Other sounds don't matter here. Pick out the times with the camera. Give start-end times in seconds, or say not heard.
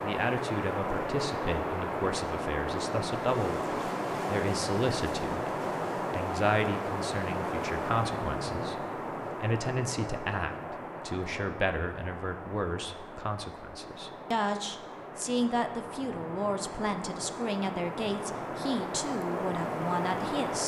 not heard.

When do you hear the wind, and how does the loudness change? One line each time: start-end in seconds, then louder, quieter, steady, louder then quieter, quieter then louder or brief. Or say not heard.
0.0-20.6 quieter then louder.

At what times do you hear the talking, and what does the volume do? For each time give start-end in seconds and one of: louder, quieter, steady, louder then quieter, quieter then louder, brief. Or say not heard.
0.0-20.6 steady.